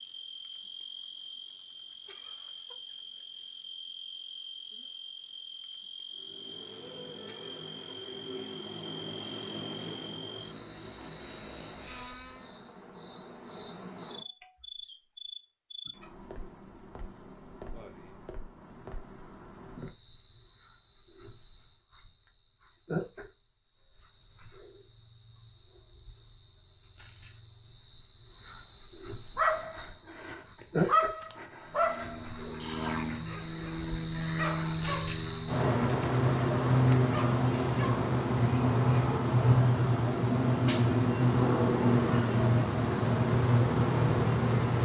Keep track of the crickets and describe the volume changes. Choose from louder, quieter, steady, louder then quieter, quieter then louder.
louder.